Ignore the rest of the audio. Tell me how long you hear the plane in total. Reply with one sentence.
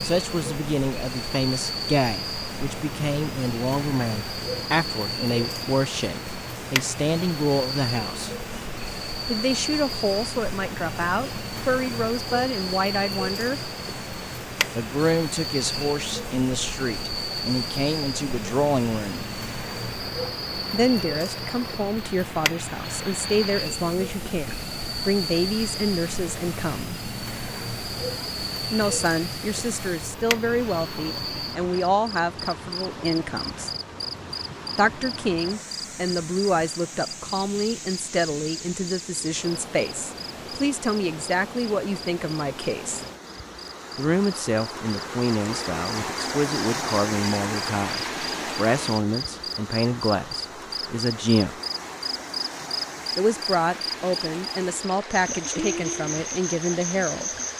You can't hear the plane here.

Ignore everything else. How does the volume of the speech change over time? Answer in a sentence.
The loudness of the speech stays about the same.